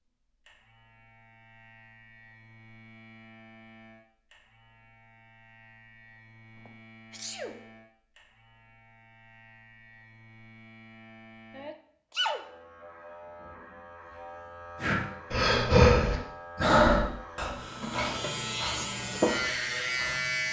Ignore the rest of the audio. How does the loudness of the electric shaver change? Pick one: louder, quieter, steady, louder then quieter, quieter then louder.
louder.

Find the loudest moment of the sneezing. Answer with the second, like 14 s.
12 s.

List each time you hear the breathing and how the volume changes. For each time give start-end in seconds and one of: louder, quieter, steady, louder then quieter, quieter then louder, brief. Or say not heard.
14.8-20.2 quieter.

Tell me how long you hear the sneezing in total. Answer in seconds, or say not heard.
2 s.